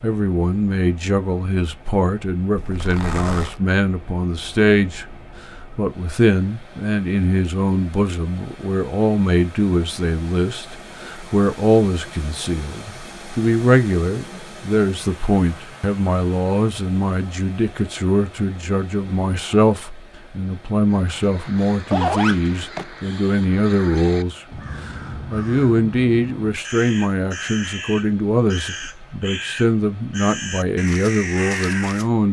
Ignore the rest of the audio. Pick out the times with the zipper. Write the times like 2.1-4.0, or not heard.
2.5-3.5, 21.2-22.9.